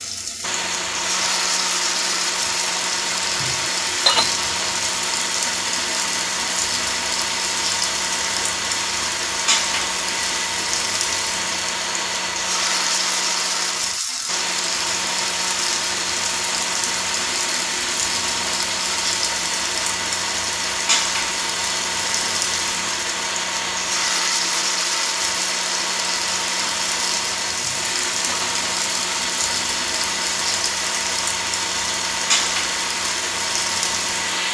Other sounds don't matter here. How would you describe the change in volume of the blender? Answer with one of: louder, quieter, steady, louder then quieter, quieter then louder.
steady.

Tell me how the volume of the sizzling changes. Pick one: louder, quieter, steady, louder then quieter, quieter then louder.
steady.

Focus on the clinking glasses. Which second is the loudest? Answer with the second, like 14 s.
4 s.